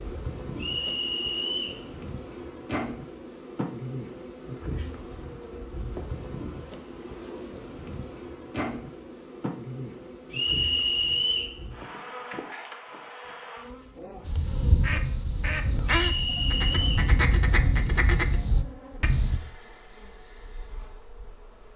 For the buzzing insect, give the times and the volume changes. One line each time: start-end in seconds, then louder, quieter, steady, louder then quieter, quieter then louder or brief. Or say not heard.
0.0-21.7 quieter.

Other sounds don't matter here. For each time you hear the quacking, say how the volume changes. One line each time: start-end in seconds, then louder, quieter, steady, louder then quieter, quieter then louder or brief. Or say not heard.
14.2-19.4 steady.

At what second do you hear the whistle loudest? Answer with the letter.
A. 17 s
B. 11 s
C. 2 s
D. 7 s
B.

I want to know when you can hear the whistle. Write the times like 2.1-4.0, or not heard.
0.6-1.8, 10.3-11.6, 16.1-17.1.